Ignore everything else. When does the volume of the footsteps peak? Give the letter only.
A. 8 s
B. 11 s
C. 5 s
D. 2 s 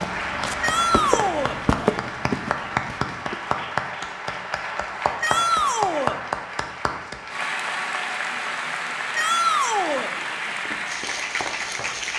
D.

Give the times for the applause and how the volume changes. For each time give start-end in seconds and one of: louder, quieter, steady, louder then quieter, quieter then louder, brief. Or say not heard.
0.0-12.1 steady.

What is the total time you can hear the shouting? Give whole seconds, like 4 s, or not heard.
3 s.